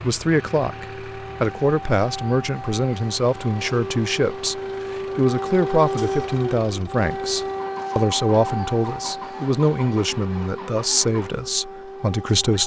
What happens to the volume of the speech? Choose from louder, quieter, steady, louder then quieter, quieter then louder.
steady.